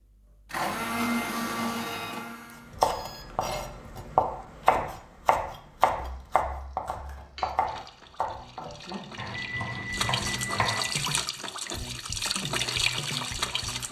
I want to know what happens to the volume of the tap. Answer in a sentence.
The loudness of the tap goes up.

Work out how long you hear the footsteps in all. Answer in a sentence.
You can't hear the footsteps here.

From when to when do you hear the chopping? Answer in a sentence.
The chopping can be heard from 2.7 to 10.8 s.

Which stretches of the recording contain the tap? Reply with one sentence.
The tap can be heard from 6.0 to 13.8 s.